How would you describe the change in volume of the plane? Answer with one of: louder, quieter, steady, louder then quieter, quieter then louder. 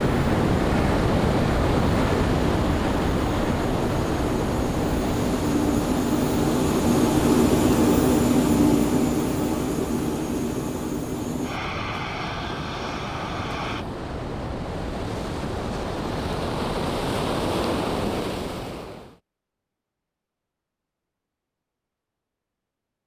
louder then quieter.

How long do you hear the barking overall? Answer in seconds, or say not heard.
not heard.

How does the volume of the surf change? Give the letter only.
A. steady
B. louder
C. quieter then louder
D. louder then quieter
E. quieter
C.